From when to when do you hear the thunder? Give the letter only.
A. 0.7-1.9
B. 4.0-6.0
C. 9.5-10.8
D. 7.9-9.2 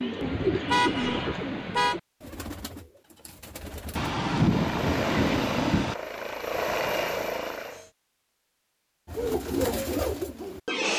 B.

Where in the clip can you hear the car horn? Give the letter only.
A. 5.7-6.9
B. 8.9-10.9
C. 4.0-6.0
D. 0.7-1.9
D.